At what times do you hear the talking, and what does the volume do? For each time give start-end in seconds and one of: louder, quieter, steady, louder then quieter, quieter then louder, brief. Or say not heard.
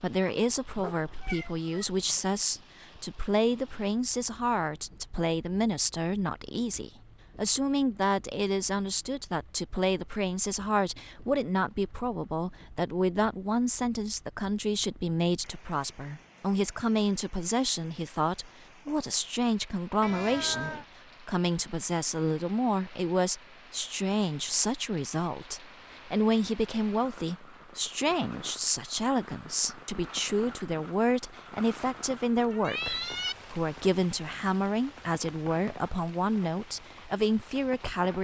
0.0-38.1 steady.